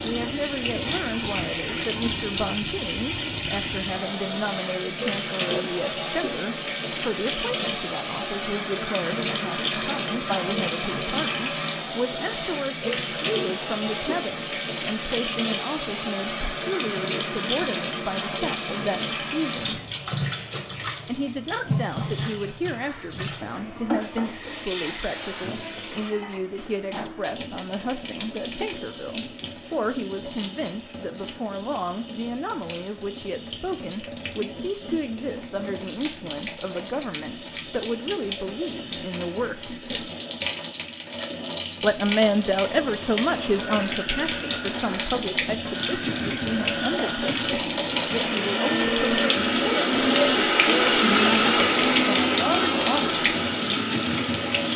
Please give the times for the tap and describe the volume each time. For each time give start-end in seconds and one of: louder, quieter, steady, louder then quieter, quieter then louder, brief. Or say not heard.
0.0-54.7 quieter then louder.